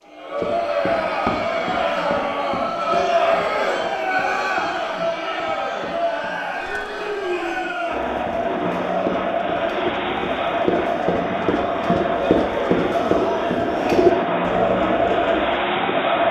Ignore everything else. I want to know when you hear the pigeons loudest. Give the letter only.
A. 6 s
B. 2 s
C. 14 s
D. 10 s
C.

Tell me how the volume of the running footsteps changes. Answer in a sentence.
The loudness of the running footsteps goes down, then up.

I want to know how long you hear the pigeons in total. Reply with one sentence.
You can hear the pigeons for 9 seconds altogether.